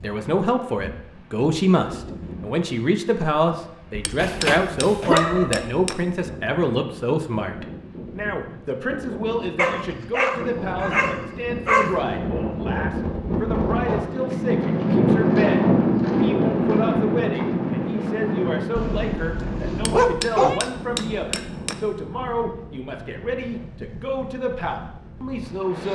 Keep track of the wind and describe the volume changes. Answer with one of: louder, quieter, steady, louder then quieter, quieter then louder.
louder then quieter.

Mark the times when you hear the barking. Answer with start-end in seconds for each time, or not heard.
4.2-5.7, 9.6-12.1, 18.8-20.6.